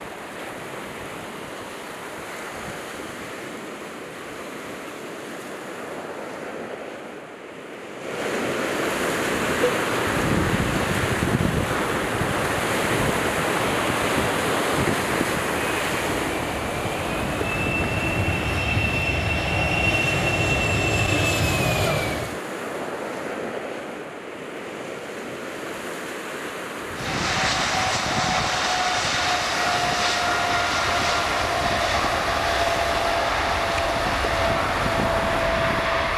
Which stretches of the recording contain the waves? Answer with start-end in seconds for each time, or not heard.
0.0-36.1.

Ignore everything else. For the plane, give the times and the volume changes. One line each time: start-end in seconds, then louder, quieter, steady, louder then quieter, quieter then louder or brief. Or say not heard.
9.1-22.4 louder
26.9-36.1 steady.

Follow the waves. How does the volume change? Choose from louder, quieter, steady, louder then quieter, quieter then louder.
louder then quieter.